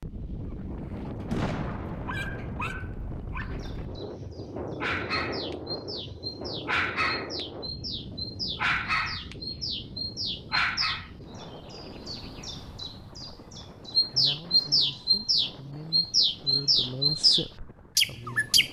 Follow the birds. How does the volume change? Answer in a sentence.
The loudness of the birds goes up.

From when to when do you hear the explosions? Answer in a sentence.
The explosions can be heard from 1.3 to 3.5 s.